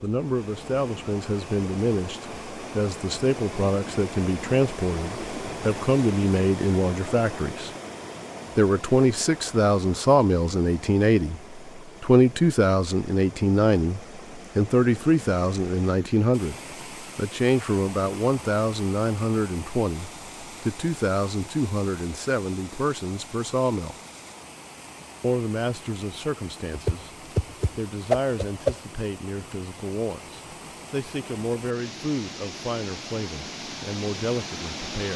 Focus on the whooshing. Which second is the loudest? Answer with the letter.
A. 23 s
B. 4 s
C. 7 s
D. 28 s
D.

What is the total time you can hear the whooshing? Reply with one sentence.
The whooshing can be heard for 2 seconds in total.